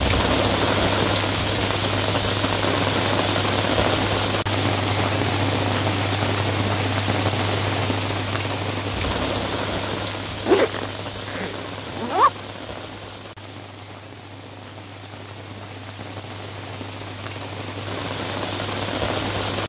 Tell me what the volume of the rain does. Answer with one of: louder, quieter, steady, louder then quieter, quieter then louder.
quieter then louder.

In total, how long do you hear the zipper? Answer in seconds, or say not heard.
2 s.